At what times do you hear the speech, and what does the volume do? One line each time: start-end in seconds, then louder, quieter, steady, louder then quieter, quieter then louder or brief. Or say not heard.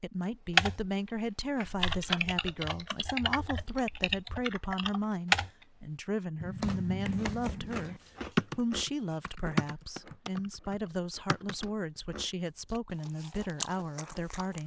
0.0-14.6 steady.